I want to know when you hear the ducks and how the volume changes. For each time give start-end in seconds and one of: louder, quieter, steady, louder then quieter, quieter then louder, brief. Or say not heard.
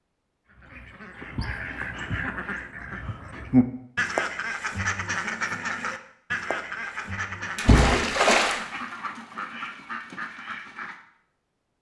0.5-11.0 louder then quieter.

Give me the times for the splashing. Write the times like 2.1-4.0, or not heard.
7.5-8.6.